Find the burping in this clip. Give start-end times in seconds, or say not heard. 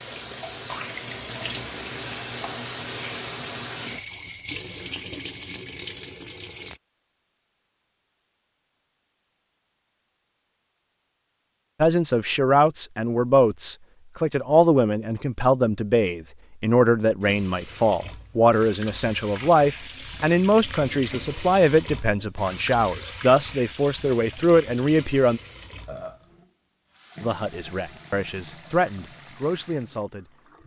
25.6-26.3.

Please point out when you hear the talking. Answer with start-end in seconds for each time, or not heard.
11.8-25.4, 27.2-30.6.